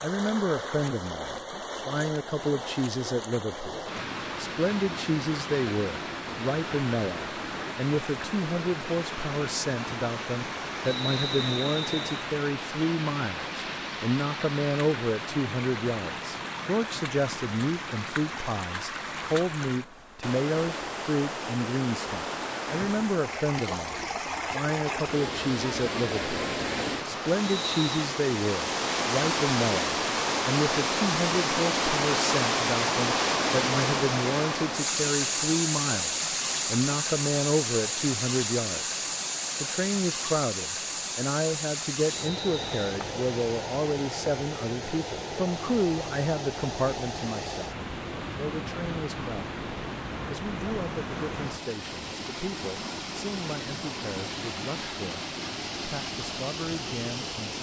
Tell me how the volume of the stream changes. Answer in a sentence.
The volume of the stream goes up, then down.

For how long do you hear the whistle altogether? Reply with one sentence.
You can hear the whistle for 3 seconds altogether.